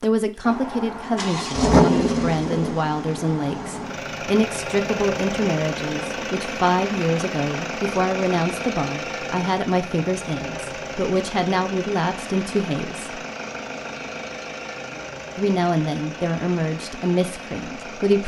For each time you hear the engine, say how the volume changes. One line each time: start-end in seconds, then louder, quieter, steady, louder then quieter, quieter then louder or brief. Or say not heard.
0.0-18.2 quieter.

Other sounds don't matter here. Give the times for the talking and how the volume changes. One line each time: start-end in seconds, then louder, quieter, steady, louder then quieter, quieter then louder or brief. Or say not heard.
0.0-13.2 steady
15.3-18.2 brief.